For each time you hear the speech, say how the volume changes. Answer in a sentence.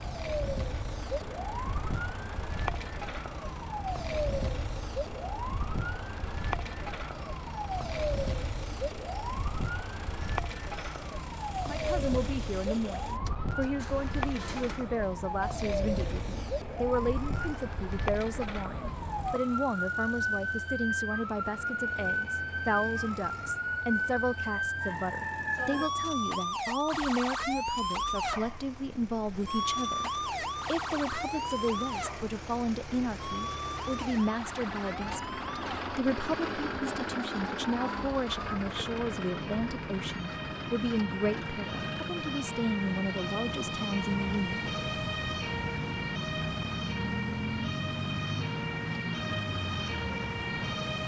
You can hear the speech from 11.7 to 44.7 s, at a steady volume.